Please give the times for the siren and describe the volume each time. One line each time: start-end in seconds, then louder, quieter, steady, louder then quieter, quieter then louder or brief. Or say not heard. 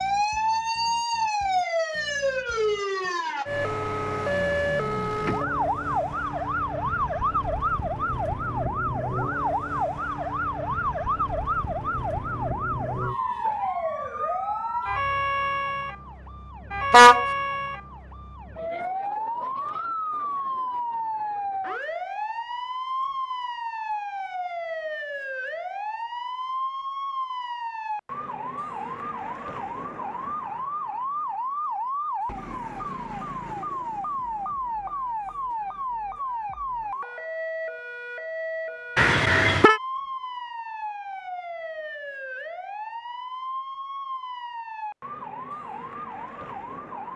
0.0-47.1 quieter.